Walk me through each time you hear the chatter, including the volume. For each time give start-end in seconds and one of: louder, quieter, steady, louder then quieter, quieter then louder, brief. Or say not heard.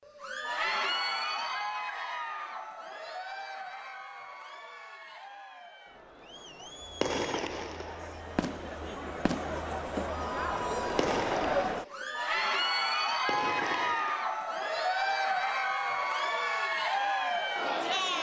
0.1-18.1 quieter then louder.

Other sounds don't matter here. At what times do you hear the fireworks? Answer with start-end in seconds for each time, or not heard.
7.0-9.8, 10.9-12.2, 13.2-14.2.